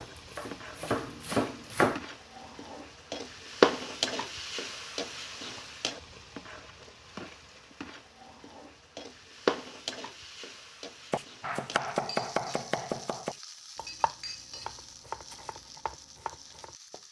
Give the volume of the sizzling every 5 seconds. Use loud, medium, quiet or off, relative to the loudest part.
loud, medium, quiet, quiet.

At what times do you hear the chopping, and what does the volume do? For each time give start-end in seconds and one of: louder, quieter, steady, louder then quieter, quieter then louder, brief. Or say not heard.
0.0-2.0 brief
11.1-17.0 quieter.